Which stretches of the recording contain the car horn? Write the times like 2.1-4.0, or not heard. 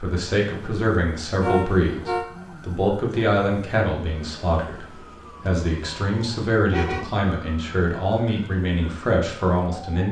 1.4-2.2, 6.7-7.2.